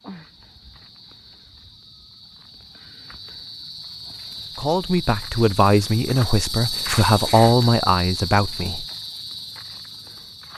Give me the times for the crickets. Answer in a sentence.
You can hear the crickets from 0.0 to 10.5 s.